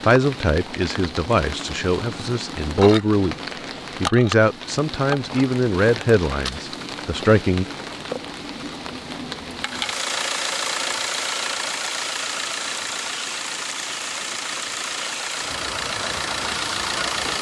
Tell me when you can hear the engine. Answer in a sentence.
You can hear the engine from 9.6 to 17.3 s.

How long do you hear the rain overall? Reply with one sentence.
The rain can be heard for 17 seconds in total.